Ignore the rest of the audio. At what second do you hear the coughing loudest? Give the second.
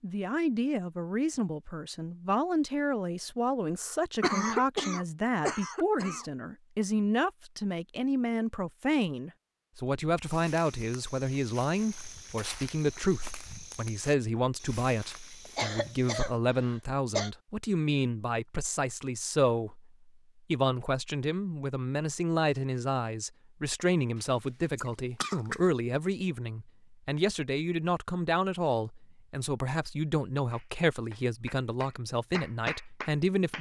4 s.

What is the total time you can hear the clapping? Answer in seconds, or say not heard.
3 s.